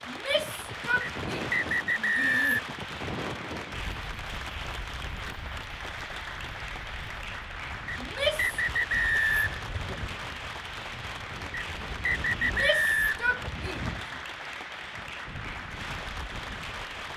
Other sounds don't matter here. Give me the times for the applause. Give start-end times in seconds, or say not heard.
0.0-17.1.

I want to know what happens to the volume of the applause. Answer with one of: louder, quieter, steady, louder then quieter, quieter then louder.
steady.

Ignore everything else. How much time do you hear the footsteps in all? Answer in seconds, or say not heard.
not heard.